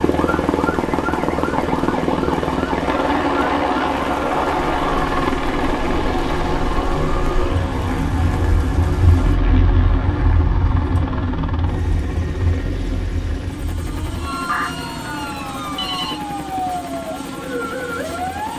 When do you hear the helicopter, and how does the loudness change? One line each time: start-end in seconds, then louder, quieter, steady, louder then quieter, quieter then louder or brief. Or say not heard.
0.0-18.5 quieter.